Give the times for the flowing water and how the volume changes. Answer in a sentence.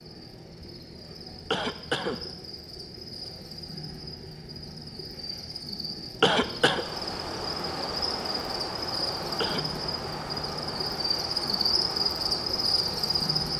The flowing water can be heard from 6.7 to 13.5 s, at a steady volume.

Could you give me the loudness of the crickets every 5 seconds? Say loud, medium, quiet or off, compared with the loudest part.
quiet, medium, loud.